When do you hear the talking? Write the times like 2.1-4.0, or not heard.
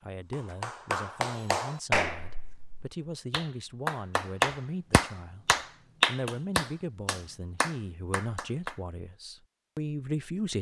0.0-10.5.